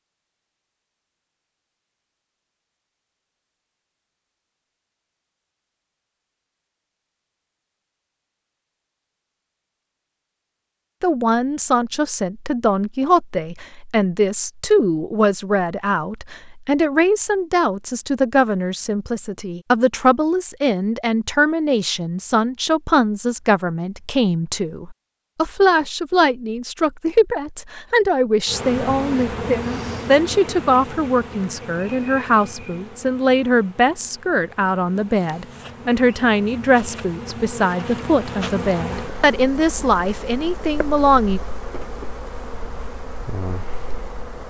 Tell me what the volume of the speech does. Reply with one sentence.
The volume of the speech stays about the same.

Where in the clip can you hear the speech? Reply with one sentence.
The speech can be heard from 11.0 to 41.4 s.